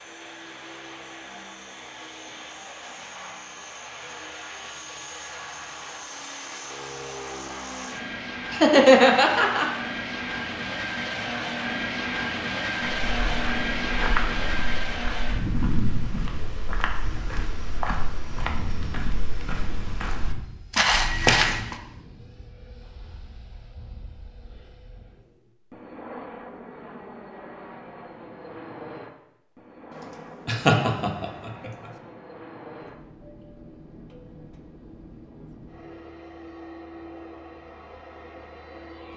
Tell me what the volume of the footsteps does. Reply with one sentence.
The loudness of the footsteps goes down, then up.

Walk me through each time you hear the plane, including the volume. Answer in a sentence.
You can hear the plane from 0.0 to 39.1 s, getting louder then quieter.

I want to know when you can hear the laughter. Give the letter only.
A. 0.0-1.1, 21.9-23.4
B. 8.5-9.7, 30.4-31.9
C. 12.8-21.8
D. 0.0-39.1
B.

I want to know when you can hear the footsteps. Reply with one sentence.
You can hear the footsteps from 12.8 to 21.8 s.